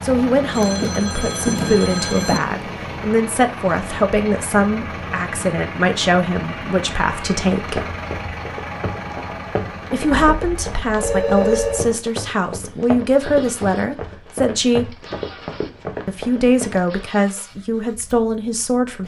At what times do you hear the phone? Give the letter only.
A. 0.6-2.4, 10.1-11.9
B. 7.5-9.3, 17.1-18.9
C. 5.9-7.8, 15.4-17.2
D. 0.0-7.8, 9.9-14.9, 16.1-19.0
A.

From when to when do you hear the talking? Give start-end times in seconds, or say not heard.
0.0-7.8, 9.9-14.9, 16.1-19.0.